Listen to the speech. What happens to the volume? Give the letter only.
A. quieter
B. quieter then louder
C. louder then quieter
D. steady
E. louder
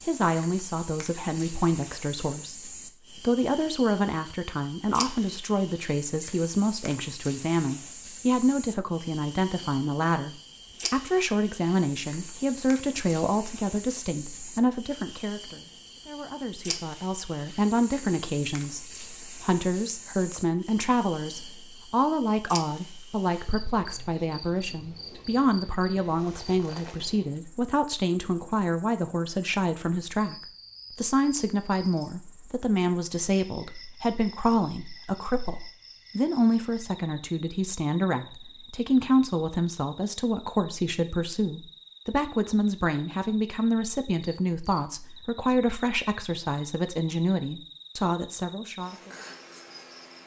D.